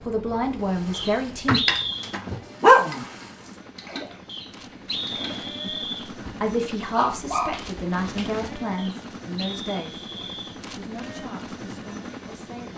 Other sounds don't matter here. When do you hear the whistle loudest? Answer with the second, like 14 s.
2 s.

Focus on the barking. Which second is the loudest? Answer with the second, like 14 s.
3 s.